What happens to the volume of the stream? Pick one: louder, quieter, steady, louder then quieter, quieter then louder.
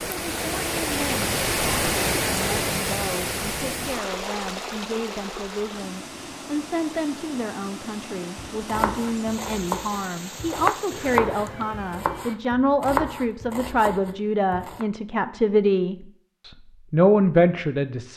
quieter.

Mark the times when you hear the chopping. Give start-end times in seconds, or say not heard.
8.3-14.8.